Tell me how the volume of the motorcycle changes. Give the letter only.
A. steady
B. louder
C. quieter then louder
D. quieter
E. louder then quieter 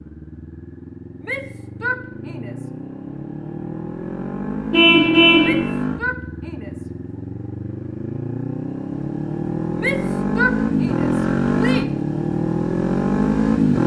B.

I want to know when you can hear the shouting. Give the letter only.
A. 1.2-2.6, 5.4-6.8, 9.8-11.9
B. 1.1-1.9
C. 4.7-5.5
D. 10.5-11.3
A.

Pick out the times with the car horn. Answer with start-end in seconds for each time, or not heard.
4.7-5.5.